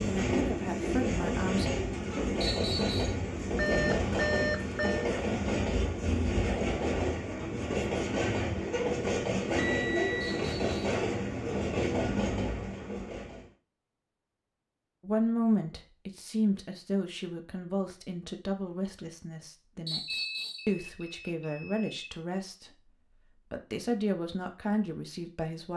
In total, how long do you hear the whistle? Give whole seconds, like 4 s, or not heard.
2 s.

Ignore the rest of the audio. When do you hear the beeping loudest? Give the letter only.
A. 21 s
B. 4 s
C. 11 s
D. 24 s
B.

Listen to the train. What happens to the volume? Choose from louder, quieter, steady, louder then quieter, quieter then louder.
steady.